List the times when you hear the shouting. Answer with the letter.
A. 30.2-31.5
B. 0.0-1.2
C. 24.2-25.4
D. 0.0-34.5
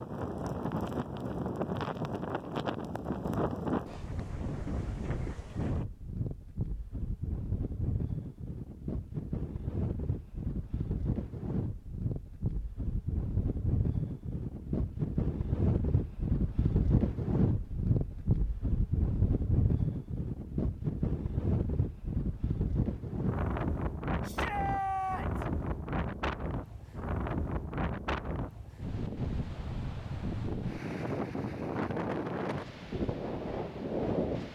C.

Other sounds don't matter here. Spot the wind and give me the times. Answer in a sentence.
The wind can be heard from 0.0 to 34.5 s.